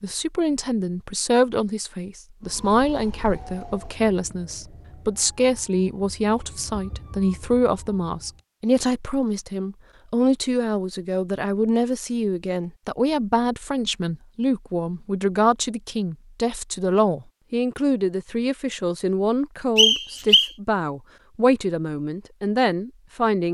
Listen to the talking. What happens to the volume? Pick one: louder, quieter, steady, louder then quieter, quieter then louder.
steady.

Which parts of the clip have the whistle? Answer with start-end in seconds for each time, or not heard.
19.8-20.5.